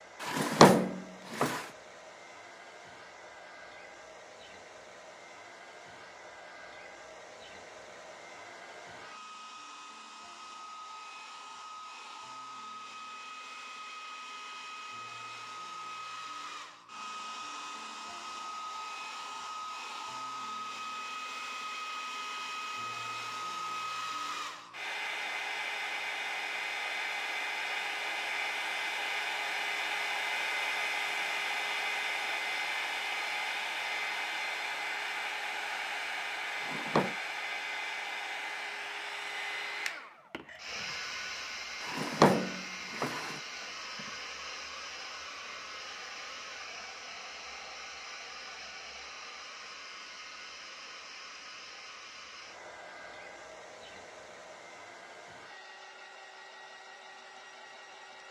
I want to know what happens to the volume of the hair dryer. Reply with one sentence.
The volume of the hair dryer goes up, then down.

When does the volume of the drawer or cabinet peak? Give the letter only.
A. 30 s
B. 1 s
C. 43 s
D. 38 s
B.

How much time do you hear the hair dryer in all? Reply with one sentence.
You can hear the hair dryer for 58 seconds altogether.